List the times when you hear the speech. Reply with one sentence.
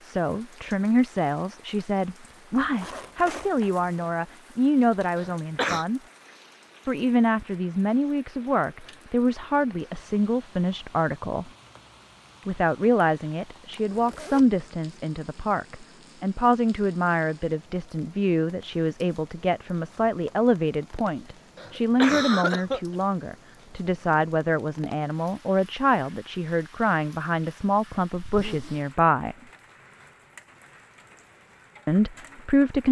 The speech can be heard from 0.0 to 6.0 s, from 6.8 to 11.5 s, from 12.4 to 29.4 s and from 31.9 to 32.8 s.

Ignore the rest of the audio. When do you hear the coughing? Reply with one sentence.
You can hear the coughing from 5.2 to 5.8 s and from 21.6 to 22.8 s.